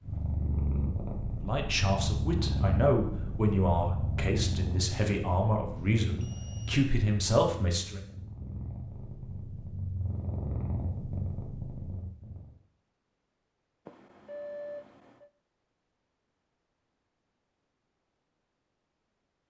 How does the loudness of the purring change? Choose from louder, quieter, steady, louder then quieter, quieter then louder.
quieter then louder.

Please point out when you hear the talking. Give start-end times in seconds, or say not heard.
1.4-8.0.